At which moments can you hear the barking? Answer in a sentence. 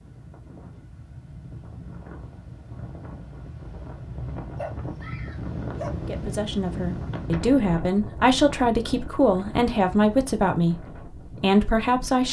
The barking can be heard from 4.5 to 6.0 s.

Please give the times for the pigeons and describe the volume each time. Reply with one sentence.
You can't hear the pigeons here.